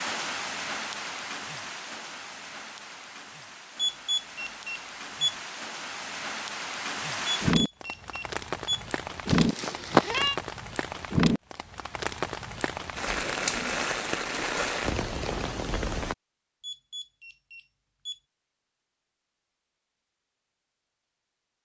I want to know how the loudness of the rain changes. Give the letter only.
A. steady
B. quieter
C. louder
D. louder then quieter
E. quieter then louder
C.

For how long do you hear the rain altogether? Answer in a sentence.
You can hear the rain for 16 seconds altogether.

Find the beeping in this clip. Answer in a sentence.
You can hear the beeping from 3.8 to 5.3 s, from 7.4 to 8.8 s and from 16.6 to 18.2 s.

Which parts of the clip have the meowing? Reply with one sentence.
You can hear the meowing from 9.2 to 10.3 s.